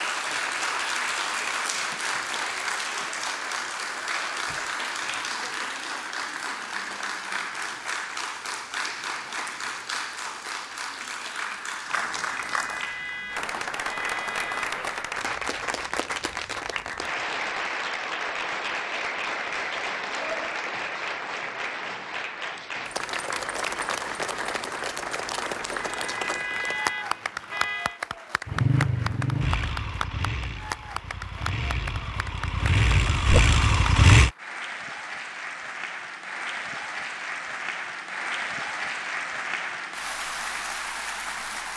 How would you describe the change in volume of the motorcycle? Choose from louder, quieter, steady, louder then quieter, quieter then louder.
quieter then louder.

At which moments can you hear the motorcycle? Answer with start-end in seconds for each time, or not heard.
28.4-34.3.